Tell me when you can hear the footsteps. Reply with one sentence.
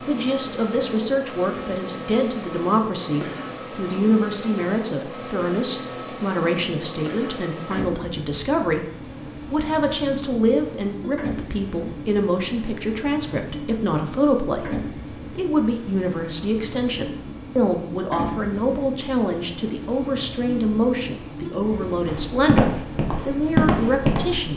You can hear the footsteps from 22.1 to 24.5 s.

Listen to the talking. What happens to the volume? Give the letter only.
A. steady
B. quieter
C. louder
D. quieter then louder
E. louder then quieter
A.